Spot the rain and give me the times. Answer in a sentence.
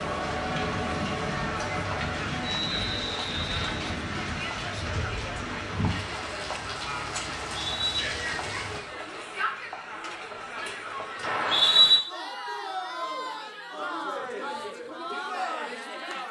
You can hear the rain from 0.0 to 8.8 s.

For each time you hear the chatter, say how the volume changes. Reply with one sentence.
You can hear the chatter from 0.0 to 16.2 s, at a steady volume.